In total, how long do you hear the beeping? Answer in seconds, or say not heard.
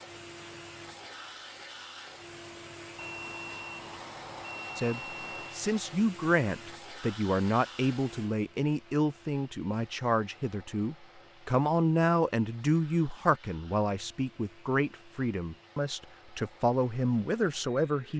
3 s.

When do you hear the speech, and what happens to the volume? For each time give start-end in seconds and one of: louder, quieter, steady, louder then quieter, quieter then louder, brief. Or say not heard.
4.8-18.1 steady.